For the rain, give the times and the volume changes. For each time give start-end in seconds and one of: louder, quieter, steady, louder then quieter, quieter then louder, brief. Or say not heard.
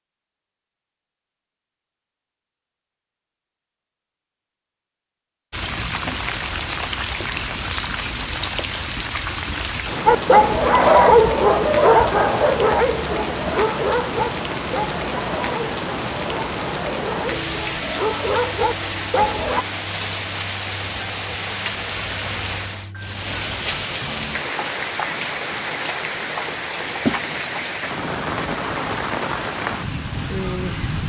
5.5-31.0 steady.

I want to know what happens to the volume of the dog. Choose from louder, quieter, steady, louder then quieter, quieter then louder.
quieter then louder.